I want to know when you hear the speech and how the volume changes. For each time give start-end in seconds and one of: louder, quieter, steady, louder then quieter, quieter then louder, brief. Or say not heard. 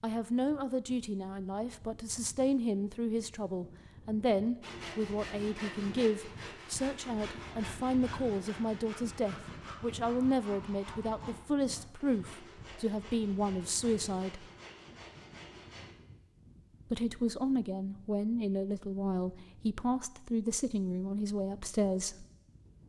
0.0-14.4 steady
16.9-22.2 steady.